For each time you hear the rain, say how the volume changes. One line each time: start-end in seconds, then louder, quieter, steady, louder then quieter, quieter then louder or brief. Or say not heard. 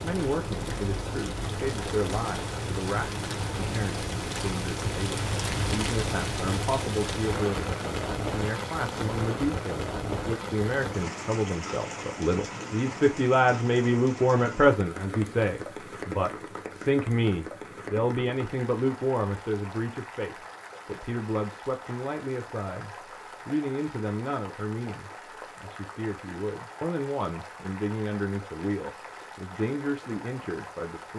0.0-31.1 quieter.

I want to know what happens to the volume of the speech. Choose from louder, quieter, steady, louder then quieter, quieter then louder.
louder then quieter.